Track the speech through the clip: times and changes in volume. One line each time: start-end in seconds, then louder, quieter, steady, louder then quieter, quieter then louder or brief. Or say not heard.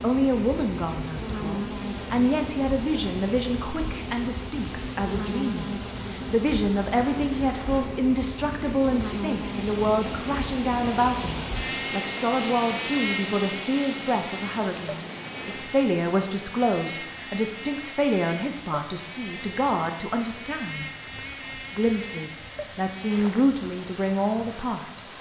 0.0-25.1 steady.